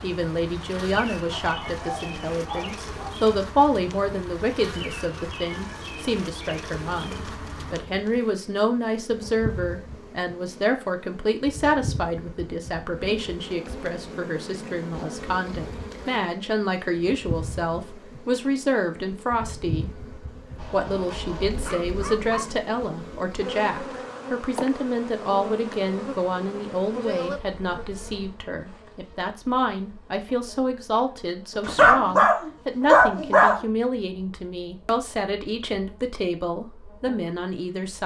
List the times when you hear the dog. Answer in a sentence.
The dog can be heard from 1.3 to 3.1 s, from 20.6 to 22.6 s and from 31.6 to 33.6 s.